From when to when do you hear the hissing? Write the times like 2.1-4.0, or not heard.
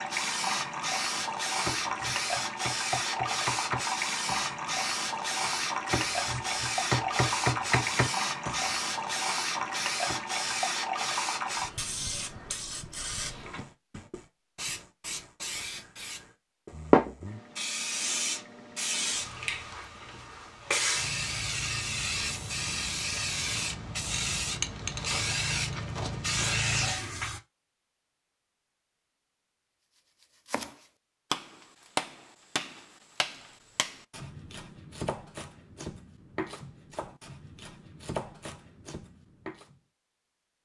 0.0-27.4.